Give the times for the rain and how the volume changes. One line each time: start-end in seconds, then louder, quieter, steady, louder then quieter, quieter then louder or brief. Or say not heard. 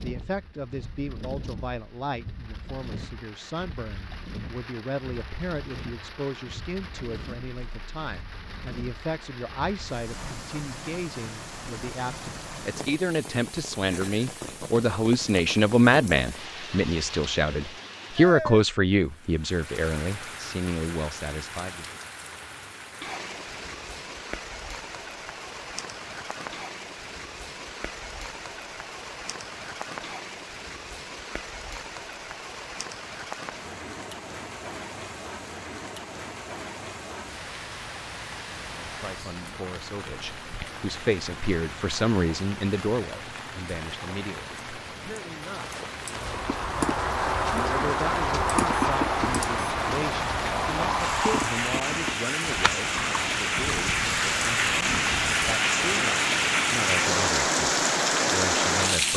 0.0-59.1 louder.